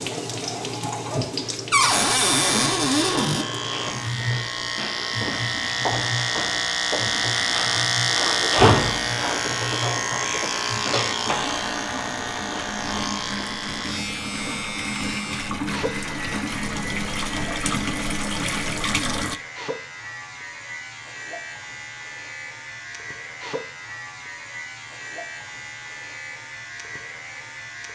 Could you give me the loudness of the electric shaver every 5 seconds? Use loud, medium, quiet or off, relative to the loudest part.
medium, loud, medium, quiet, quiet, quiet.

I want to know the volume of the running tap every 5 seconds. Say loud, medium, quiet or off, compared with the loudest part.
loud, medium, medium, loud, off, off.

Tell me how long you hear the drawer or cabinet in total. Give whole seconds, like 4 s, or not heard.
2 s.